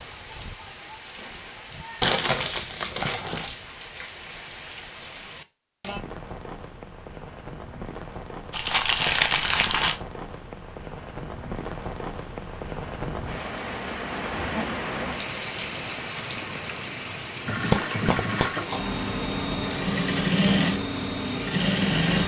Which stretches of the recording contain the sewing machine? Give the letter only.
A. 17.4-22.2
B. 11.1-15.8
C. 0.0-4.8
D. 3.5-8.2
A.